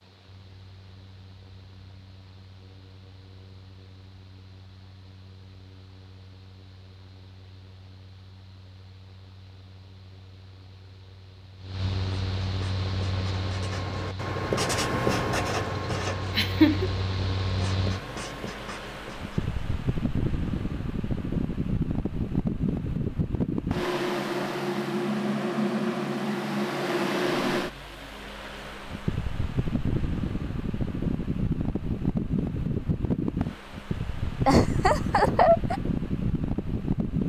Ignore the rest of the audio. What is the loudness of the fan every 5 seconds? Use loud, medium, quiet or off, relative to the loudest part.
quiet, quiet, medium, medium, loud, loud, loud, loud.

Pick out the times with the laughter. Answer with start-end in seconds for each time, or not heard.
16.4-16.9, 34.5-35.8.